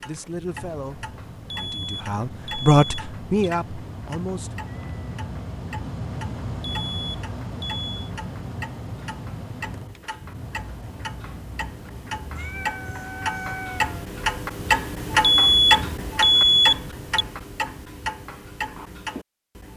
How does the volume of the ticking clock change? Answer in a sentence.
The volume of the ticking clock goes up.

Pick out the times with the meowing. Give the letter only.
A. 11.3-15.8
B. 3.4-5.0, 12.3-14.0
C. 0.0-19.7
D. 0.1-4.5
B.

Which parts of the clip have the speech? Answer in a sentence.
The speech can be heard from 0.1 to 4.5 s.